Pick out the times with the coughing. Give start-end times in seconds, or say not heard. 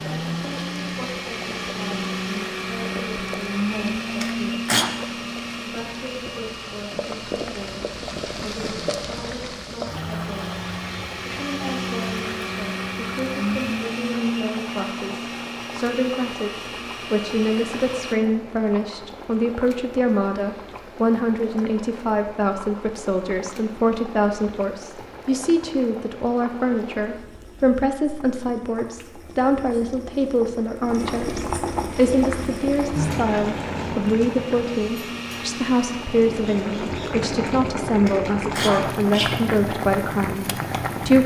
4.2-4.9, 38.0-39.4.